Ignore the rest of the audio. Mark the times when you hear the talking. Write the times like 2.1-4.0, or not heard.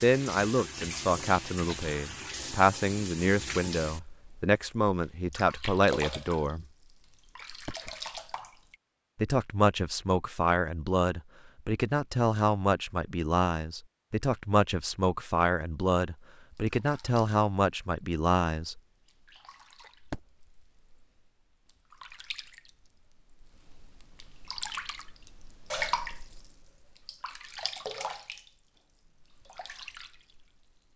0.0-6.7, 9.2-18.8.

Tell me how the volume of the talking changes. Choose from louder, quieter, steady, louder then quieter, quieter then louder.
steady.